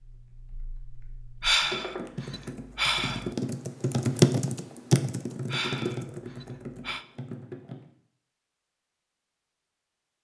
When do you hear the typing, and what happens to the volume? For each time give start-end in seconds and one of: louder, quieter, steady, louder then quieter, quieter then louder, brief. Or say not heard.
0.0-7.8 louder then quieter.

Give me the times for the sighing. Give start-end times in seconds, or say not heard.
1.4-3.3, 5.5-7.0.